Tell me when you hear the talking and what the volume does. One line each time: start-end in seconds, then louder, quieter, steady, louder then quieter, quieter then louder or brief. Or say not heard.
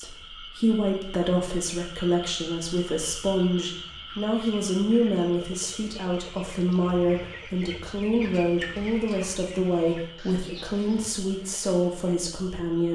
0.0-12.8 steady.